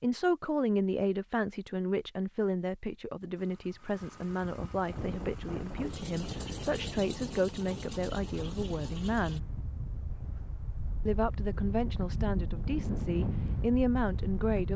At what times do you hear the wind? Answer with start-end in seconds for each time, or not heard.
4.8-14.7.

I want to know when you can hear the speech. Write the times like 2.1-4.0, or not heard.
0.0-9.6, 11.1-14.7.